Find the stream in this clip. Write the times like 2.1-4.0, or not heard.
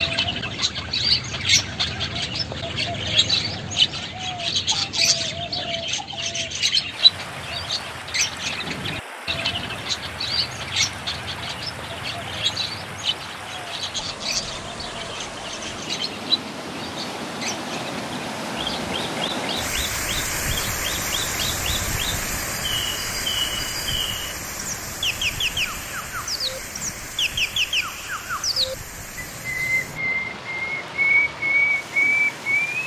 6.8-32.8.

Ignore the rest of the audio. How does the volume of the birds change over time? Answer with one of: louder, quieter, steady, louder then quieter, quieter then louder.
quieter then louder.